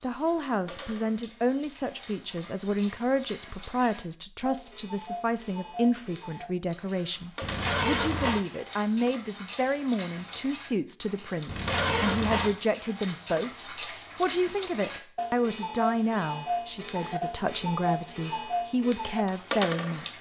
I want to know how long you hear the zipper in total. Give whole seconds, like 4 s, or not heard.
2 s.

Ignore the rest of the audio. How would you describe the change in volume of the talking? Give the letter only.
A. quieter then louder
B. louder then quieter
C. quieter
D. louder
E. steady
E.